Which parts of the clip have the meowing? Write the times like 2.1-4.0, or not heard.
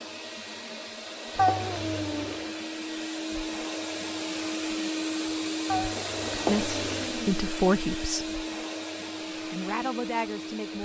1.4-2.4, 5.7-7.5.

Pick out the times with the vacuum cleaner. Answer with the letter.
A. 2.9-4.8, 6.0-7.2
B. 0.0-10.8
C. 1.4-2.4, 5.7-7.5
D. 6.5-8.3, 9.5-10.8
B.